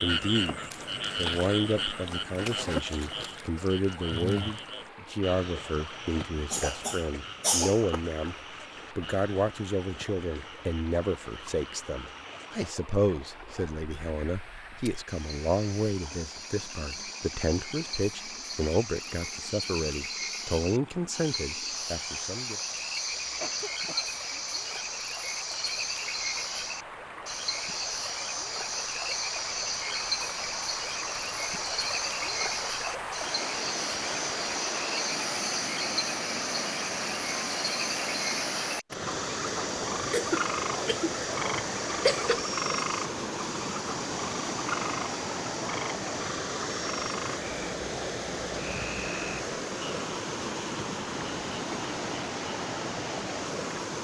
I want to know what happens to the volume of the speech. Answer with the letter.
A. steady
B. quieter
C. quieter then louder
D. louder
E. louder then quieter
A.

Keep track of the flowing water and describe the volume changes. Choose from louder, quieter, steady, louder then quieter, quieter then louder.
louder.